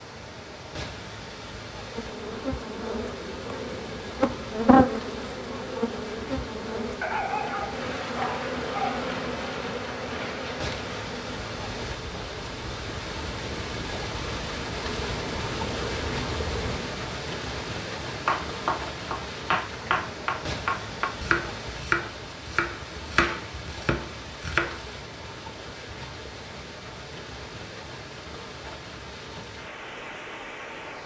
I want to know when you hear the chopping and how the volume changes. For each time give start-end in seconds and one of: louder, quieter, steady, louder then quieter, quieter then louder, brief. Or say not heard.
18.2-24.9 quieter.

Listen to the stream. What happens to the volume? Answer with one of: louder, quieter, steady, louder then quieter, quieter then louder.
louder then quieter.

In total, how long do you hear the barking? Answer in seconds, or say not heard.
2 s.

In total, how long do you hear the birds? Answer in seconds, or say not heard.
not heard.